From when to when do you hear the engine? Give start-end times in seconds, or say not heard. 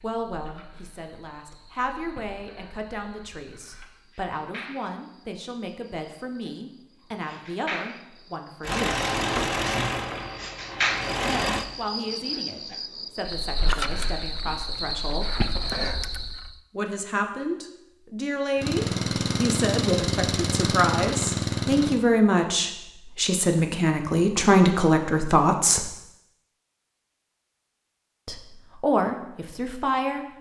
8.6-11.7, 18.6-22.0.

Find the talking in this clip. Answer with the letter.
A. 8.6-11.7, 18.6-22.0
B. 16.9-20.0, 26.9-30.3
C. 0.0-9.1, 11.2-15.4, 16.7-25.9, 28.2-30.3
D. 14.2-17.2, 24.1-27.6
C.